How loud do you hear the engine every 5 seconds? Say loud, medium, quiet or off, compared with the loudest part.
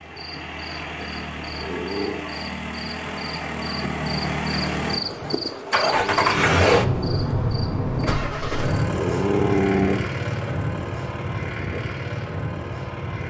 medium, loud, medium.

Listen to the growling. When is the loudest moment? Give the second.
10 s.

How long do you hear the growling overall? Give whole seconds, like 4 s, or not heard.
3 s.